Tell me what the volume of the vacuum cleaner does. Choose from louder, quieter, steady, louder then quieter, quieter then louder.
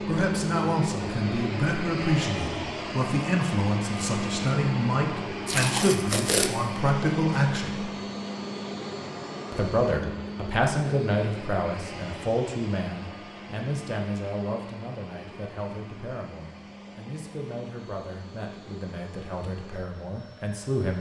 quieter.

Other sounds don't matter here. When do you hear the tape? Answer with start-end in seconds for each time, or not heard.
5.5-6.5.